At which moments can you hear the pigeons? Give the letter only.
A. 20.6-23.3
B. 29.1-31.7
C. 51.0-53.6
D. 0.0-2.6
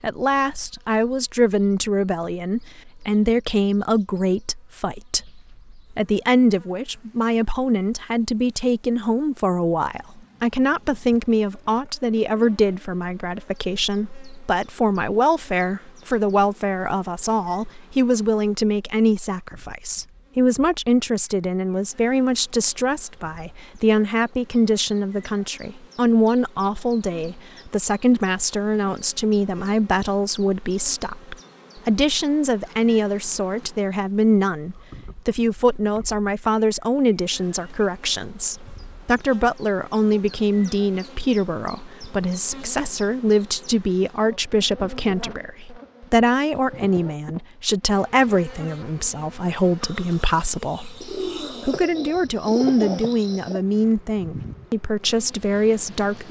C.